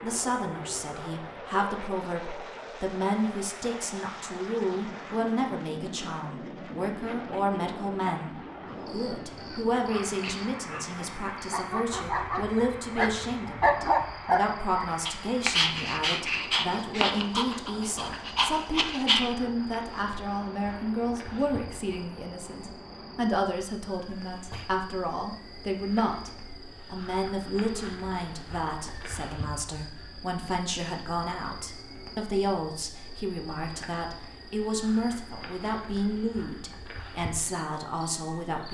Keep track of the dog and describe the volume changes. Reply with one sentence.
The loudness of the dog goes up, then down.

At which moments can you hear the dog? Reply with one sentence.
You can hear the dog from 9.3 to 19.4 s.